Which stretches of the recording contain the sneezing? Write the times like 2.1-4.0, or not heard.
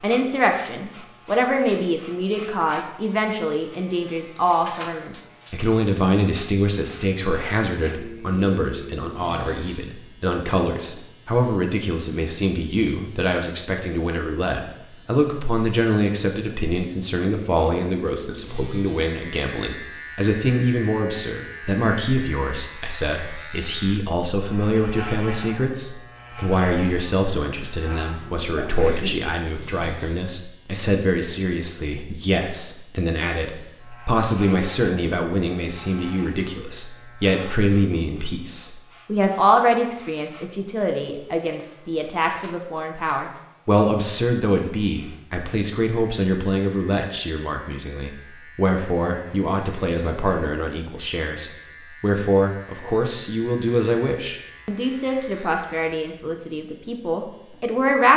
28.6-29.2.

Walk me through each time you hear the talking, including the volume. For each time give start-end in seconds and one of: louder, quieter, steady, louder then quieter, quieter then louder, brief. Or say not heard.
0.0-58.1 steady.